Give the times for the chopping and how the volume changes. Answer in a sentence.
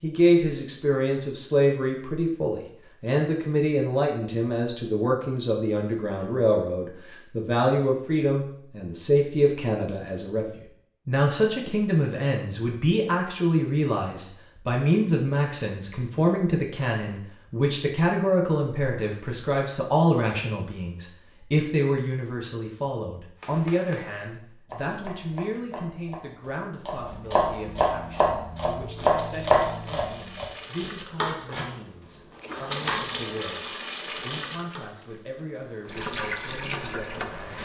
The chopping can be heard from 23.4 to 34.8 s, getting louder then quieter.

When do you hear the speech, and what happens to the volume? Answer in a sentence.
You can hear the speech from 0.0 to 37.5 s, getting quieter.